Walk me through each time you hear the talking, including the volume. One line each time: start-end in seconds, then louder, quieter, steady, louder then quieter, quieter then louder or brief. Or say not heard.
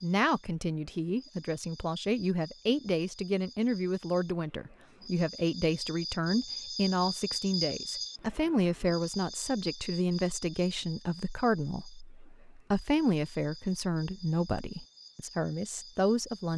0.0-16.5 steady.